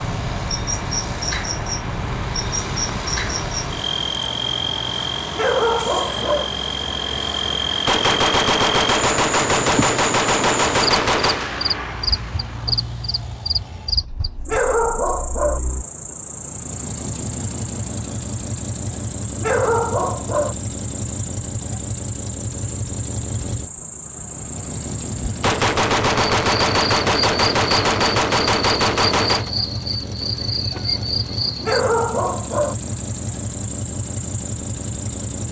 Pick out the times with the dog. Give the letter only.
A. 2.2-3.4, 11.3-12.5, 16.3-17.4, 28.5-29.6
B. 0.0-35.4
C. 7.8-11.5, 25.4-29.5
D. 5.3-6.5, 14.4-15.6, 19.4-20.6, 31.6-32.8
D.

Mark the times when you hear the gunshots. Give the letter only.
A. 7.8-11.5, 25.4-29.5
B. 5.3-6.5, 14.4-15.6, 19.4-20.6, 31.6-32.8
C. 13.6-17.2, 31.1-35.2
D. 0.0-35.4
A.